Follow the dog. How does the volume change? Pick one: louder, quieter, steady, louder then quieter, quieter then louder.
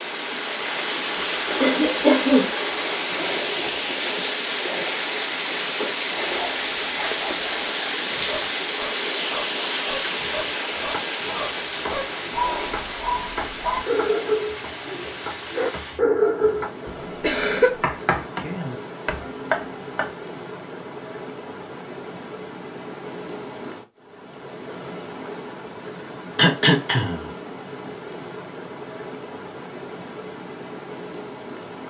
louder.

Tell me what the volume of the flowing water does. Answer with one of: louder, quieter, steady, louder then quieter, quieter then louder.
quieter.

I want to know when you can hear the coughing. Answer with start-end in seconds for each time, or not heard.
1.6-2.5, 17.2-17.7, 26.4-27.3.